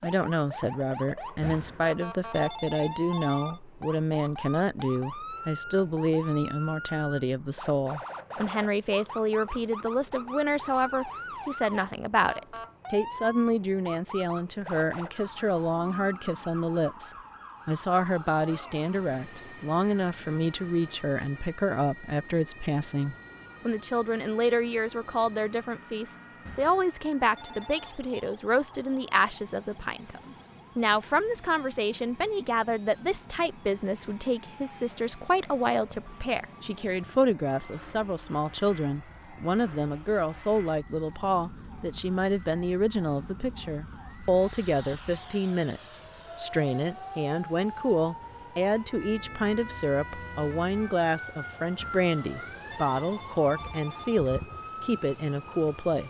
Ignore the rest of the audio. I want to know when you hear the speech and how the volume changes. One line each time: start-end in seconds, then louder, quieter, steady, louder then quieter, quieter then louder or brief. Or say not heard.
0.0-56.0 steady.